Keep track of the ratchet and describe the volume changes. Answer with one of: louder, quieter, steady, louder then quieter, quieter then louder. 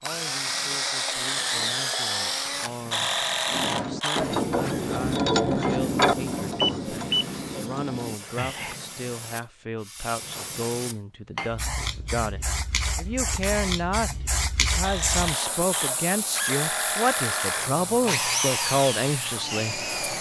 quieter.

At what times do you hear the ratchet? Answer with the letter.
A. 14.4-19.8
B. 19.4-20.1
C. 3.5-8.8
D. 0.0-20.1
C.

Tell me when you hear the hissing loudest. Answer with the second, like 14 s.
15 s.